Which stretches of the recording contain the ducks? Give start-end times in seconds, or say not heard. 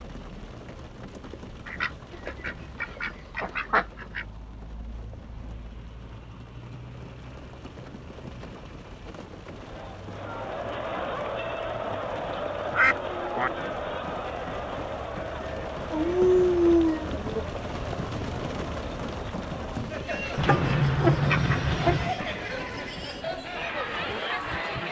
1.6-4.2, 12.3-13.5, 20.4-22.1.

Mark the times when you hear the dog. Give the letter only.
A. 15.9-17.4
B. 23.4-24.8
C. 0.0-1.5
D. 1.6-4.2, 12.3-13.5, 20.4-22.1
A.